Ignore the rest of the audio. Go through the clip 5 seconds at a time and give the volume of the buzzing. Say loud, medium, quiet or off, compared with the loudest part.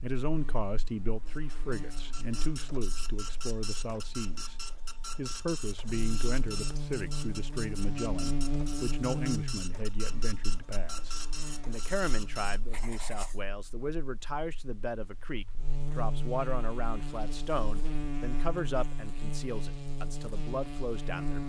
quiet, loud, quiet, loud, loud.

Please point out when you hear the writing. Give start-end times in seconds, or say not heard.
12.5-13.4.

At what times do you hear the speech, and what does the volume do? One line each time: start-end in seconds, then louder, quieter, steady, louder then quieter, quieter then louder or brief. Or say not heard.
0.0-21.4 steady.